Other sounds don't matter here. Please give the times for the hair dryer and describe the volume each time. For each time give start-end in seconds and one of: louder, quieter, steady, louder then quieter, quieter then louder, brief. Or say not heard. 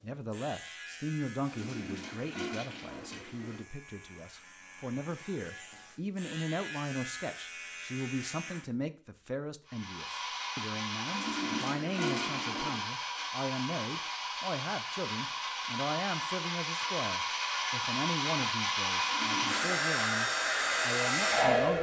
9.7-21.7 louder.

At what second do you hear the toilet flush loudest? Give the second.
12 s.